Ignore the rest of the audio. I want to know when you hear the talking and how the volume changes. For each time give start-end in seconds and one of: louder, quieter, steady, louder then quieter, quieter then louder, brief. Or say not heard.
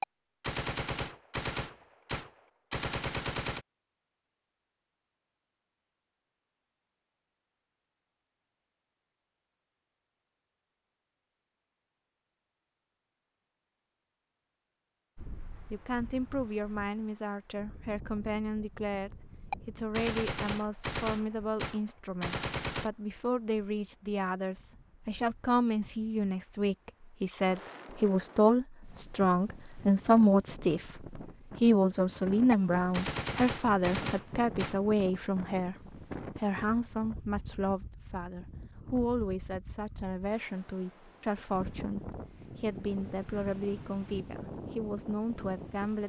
15.7-46.0 louder then quieter.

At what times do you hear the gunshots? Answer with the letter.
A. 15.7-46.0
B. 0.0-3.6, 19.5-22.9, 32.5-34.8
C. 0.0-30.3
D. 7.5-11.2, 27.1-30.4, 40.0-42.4
B.